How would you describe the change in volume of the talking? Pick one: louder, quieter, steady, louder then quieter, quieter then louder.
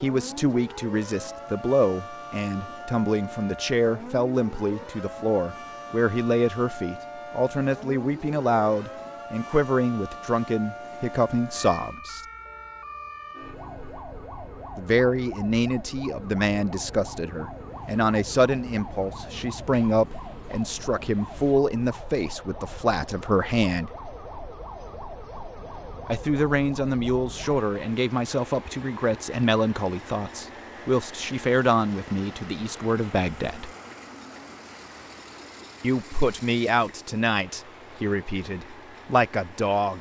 steady.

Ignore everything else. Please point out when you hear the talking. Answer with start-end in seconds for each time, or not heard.
0.0-12.2, 14.8-23.9, 26.1-33.7, 35.8-39.9.